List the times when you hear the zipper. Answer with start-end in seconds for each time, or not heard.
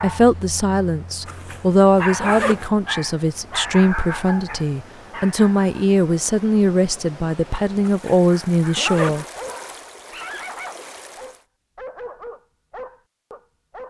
1.2-2.7, 7.8-9.2.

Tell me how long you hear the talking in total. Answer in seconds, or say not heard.
9 s.